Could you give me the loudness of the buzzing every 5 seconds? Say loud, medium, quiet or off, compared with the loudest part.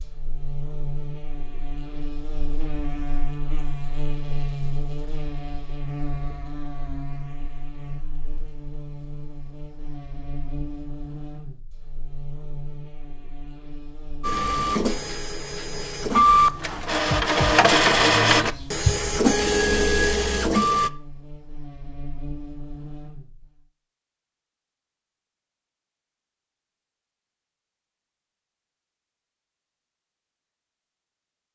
loud, loud, medium, medium, medium, off, off.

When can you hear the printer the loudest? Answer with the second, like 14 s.
18 s.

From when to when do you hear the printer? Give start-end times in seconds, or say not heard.
14.2-20.9.